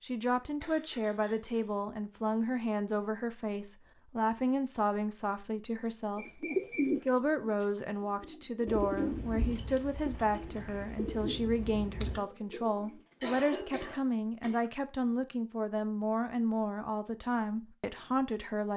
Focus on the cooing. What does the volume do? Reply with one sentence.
The volume of the cooing goes down.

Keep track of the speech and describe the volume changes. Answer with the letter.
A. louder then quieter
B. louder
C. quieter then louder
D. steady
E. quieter
D.